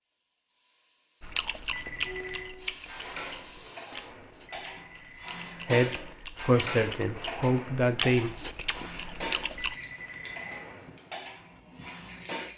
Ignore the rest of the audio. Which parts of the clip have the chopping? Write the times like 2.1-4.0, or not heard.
not heard.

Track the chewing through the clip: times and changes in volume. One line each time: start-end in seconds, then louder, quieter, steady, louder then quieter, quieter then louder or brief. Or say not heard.
1.2-9.8 quieter then louder.